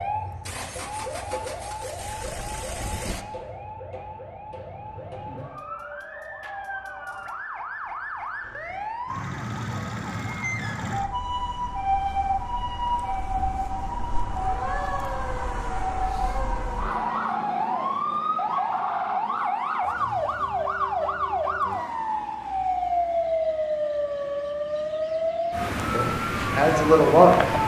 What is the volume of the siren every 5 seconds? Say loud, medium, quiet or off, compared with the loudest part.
medium, medium, loud, loud, loud, loud.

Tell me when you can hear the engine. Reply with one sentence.
You can hear the engine from 0.2 to 3.2 s.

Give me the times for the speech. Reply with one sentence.
You can hear the speech from 25.9 to 27.5 s.